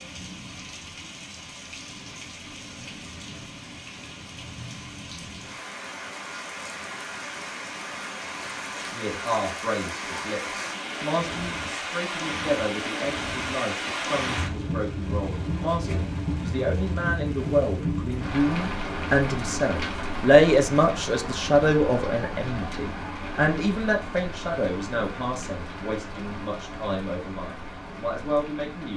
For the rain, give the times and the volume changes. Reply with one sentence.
The rain can be heard from 0.0 to 28.9 s, getting louder then quieter.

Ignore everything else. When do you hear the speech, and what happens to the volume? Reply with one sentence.
You can hear the speech from 8.9 to 28.9 s, getting louder then quieter.